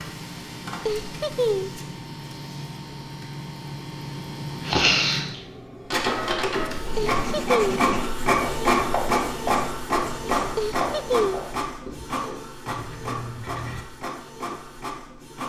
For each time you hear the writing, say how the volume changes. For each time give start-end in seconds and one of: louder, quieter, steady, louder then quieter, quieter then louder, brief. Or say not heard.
6.8-13.8 quieter.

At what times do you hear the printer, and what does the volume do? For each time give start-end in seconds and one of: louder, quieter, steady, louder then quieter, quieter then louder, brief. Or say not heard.
0.0-15.4 louder then quieter.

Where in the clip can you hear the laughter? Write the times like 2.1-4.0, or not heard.
0.8-1.8, 7.0-7.9, 10.6-11.5.